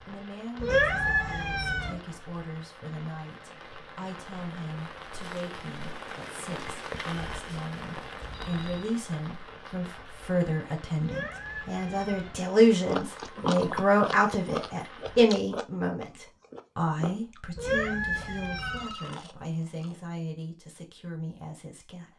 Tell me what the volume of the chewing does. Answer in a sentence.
The volume of the chewing goes down.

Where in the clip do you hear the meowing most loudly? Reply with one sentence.
The volume of the meowing peaks at 1 second.